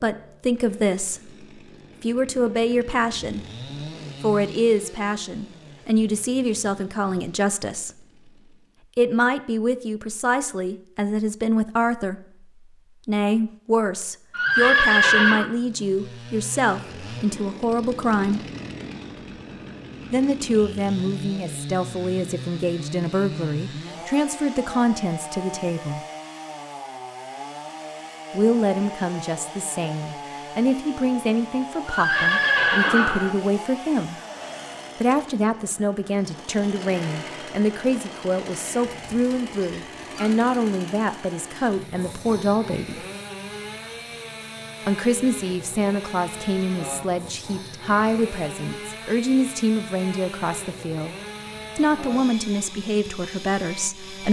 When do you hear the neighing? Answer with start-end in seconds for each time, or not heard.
14.3-15.5, 31.9-33.4, 39.0-40.4.